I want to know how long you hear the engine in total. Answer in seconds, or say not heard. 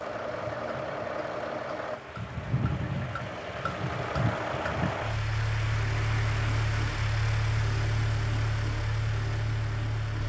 10 s.